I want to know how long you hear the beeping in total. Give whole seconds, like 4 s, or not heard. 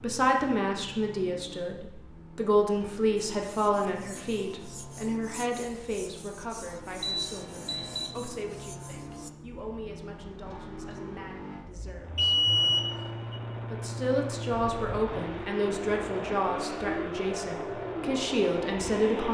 2 s.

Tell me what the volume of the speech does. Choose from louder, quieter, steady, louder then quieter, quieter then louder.
quieter then louder.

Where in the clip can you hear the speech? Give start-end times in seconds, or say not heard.
0.0-12.4, 13.7-19.2.